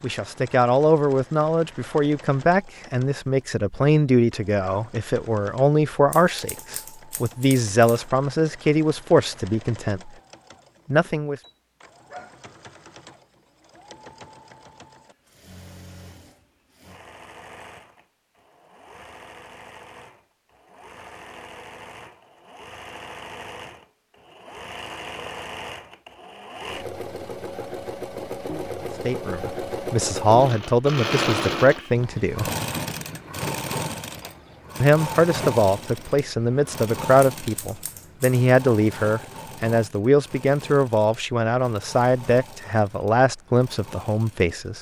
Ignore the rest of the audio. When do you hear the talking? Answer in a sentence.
The talking can be heard from 0.0 to 10.1 s, from 10.9 to 11.4 s, from 29.1 to 32.5 s and from 34.8 to 44.7 s.